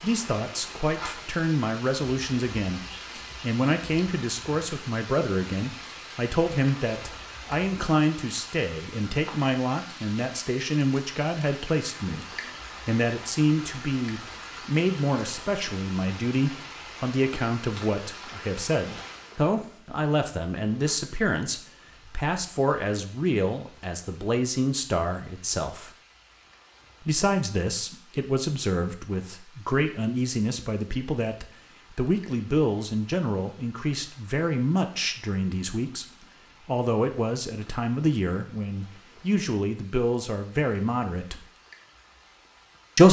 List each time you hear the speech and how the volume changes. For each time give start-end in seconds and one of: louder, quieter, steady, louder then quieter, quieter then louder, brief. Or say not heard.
0.0-25.9 steady
27.0-41.5 steady.